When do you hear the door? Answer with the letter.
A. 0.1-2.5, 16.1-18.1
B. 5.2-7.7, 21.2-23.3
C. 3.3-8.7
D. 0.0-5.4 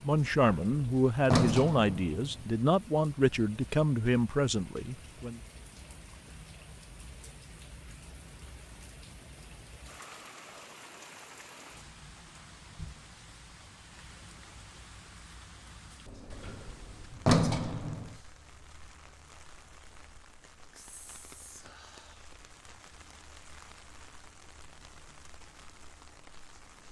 A.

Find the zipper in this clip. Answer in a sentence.
You can't hear the zipper here.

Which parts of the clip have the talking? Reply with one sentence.
You can hear the talking from 0.0 to 5.4 s.